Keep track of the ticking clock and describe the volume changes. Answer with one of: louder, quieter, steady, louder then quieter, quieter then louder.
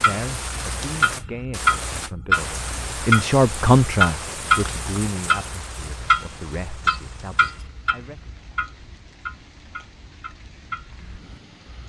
quieter.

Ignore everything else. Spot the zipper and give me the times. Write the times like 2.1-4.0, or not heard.
not heard.